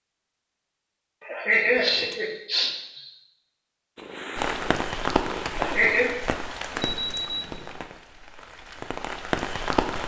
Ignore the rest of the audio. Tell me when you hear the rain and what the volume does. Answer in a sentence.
You can hear the rain from 4.3 to 10.0 s, getting quieter then louder.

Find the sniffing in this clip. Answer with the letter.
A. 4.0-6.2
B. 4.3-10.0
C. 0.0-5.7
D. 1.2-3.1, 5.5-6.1
D.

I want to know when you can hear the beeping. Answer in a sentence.
You can hear the beeping from 1.5 to 2.2 s and from 6.7 to 7.8 s.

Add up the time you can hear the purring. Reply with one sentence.
You can hear the purring for 2 seconds altogether.